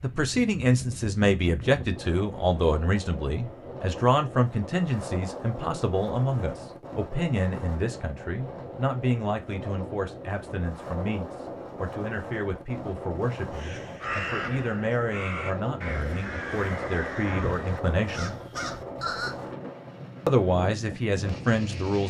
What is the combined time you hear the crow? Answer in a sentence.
The crow can be heard for 6 seconds in total.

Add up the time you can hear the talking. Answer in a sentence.
You can hear the talking for 20 seconds altogether.